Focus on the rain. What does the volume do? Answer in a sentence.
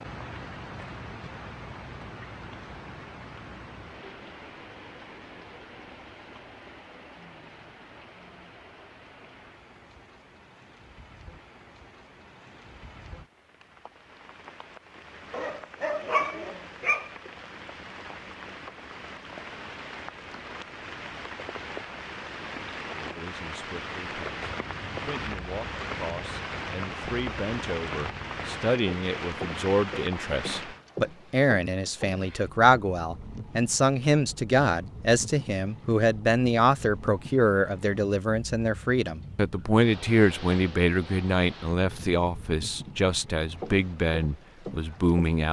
The loudness of the rain goes down, then up.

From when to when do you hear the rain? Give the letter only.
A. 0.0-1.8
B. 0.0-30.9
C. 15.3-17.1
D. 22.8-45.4
B.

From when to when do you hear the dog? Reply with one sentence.
You can hear the dog from 15.3 to 17.1 s.